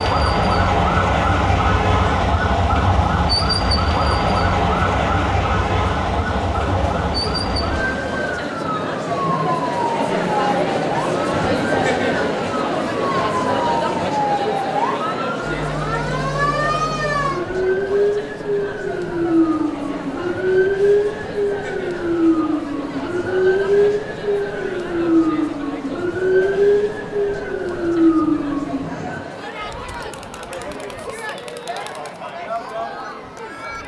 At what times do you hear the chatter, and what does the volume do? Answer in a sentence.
You can hear the chatter from 0.0 to 33.8 s, getting louder then quieter.